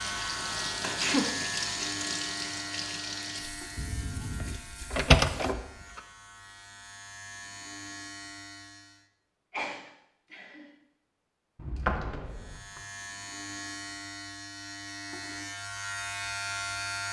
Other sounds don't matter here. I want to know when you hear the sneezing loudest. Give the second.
1 s.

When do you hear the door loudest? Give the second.
5 s.